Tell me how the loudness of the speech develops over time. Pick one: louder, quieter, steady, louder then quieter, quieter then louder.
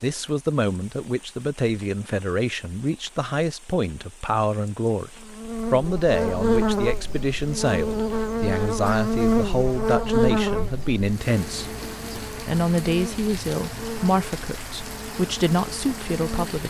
steady.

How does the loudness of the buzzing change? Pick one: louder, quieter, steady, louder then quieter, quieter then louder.
quieter.